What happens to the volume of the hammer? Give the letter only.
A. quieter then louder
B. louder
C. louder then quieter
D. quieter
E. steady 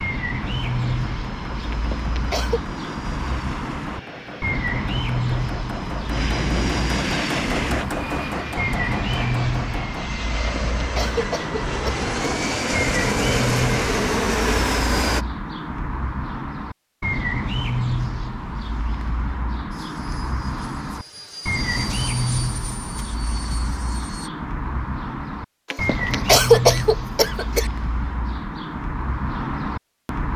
B.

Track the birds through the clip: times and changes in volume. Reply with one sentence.
You can hear the birds from 0.0 to 30.3 s, at a steady volume.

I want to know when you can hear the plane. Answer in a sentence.
The plane can be heard from 0.0 to 15.2 s and from 19.7 to 24.3 s.